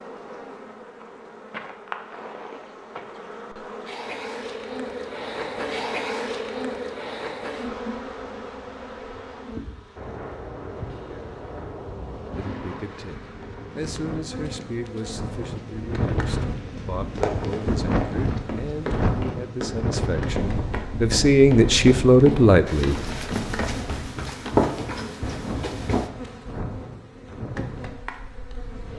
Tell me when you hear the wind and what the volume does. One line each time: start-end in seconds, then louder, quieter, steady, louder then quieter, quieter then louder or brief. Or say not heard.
9.9-28.9 louder then quieter.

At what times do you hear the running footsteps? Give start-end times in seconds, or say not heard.
16.6-26.1.